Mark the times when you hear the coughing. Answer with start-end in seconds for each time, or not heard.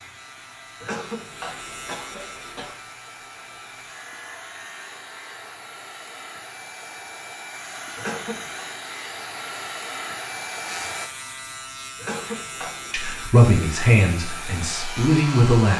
0.8-2.8, 8.0-8.7, 11.9-12.9.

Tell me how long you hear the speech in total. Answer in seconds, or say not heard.
3 s.